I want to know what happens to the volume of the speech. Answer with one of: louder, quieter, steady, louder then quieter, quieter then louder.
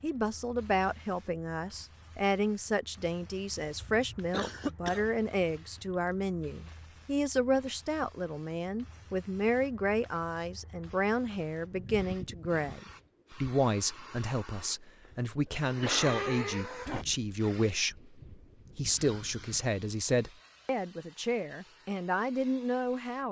steady.